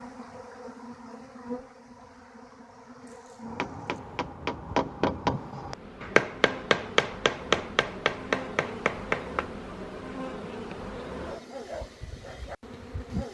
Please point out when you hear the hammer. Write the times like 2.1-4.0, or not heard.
3.4-9.4.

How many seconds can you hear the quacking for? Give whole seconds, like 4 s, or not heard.
not heard.